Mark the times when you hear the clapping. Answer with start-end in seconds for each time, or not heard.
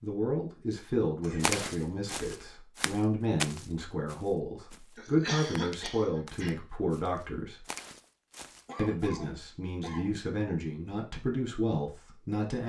not heard.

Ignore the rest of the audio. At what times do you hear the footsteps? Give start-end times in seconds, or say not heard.
1.4-8.6.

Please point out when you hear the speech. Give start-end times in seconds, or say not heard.
0.0-7.7, 8.8-12.6.